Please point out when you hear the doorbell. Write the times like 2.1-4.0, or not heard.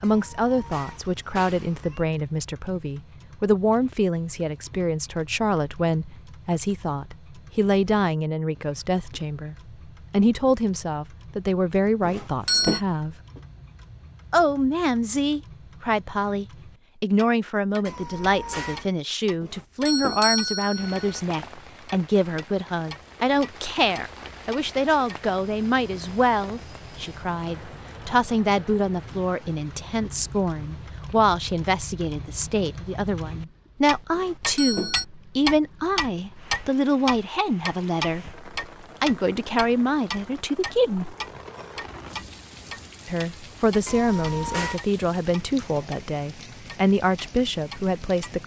12.0-12.8, 19.4-21.2, 34.1-35.0.